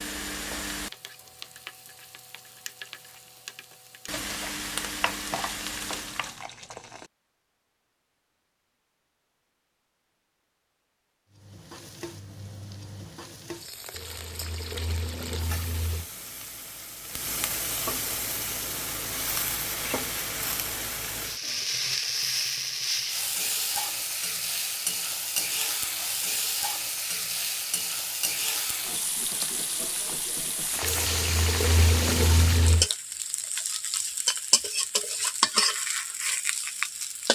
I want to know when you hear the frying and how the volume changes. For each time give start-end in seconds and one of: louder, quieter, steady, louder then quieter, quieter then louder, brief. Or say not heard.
0.0-6.5 quieter then louder
11.3-37.3 louder.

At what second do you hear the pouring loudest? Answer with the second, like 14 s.
32 s.